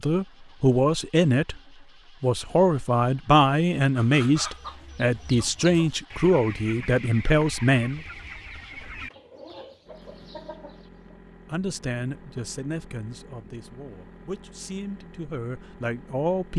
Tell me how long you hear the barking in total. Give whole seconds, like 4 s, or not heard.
not heard.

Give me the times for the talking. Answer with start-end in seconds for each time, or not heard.
0.0-1.6, 2.2-8.0, 11.5-16.5.